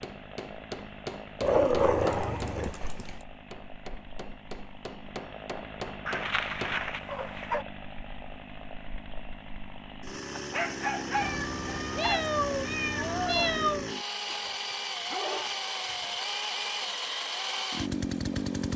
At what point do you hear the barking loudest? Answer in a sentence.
The loudest moment of the barking is at 2 seconds.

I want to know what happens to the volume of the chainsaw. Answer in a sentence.
The volume of the chainsaw goes up.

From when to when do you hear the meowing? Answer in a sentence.
You can hear the meowing from 2.0 to 3.2 s and from 11.2 to 13.9 s.